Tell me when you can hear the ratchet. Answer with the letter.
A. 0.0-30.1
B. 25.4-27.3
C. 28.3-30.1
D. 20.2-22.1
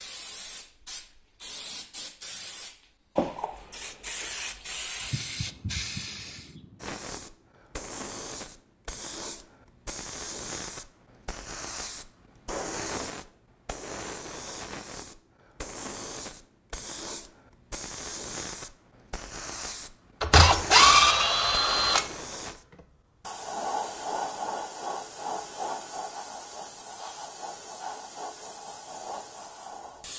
D.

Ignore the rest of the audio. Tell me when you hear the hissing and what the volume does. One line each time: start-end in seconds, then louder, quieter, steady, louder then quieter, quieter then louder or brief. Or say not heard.
0.0-30.1 steady.